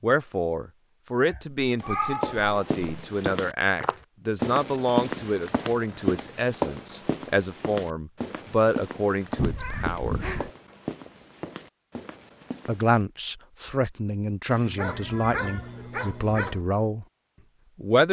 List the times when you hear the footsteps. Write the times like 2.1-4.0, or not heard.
1.8-13.0.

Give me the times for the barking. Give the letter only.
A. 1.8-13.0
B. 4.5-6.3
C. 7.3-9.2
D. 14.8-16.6
D.